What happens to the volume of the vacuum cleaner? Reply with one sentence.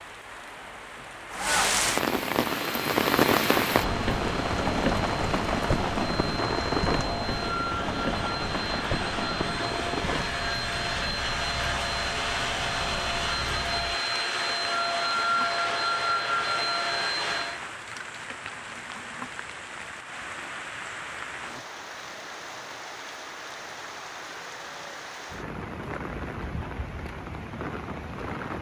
The volume of the vacuum cleaner goes up.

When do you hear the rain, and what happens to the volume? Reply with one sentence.
You can hear the rain from 0.0 to 28.5 s, getting quieter.